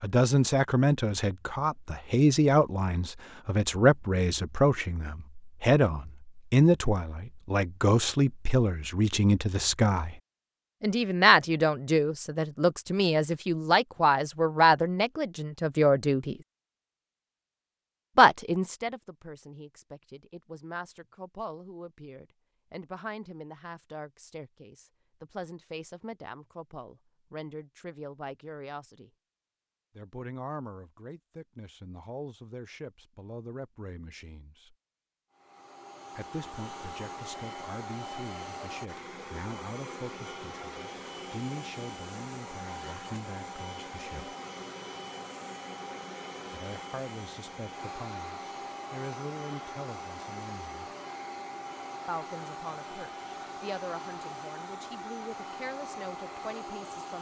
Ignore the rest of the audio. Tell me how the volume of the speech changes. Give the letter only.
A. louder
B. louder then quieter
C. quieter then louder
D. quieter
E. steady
D.